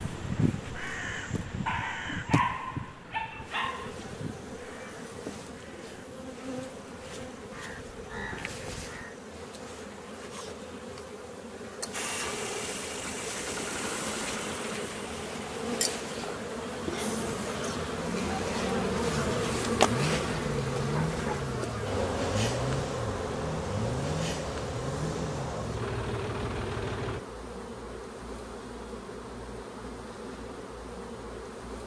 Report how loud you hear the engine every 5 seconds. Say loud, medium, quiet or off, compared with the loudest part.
off, off, loud, loud, loud, loud, off.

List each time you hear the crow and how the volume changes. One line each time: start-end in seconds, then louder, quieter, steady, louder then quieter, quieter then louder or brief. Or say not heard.
0.0-9.2 quieter then louder.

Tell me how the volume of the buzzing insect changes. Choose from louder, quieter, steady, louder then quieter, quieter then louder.
louder then quieter.